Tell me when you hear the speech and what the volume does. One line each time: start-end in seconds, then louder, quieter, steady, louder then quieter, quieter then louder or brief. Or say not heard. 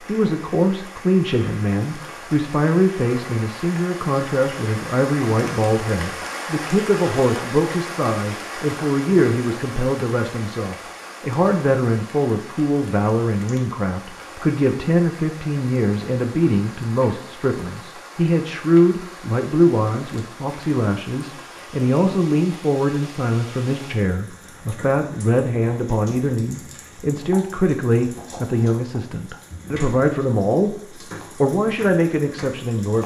0.1-33.0 steady.